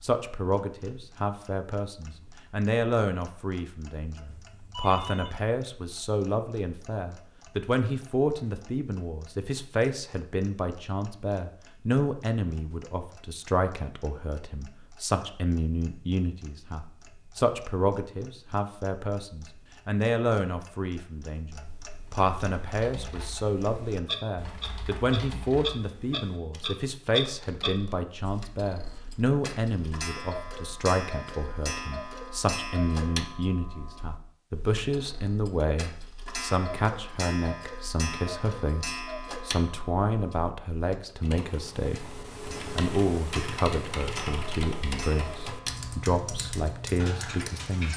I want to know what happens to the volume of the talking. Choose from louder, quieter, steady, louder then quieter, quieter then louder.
steady.